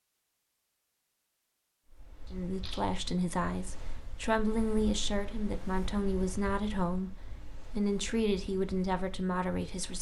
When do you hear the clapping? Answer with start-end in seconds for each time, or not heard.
not heard.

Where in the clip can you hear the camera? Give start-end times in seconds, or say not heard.
2.2-2.9.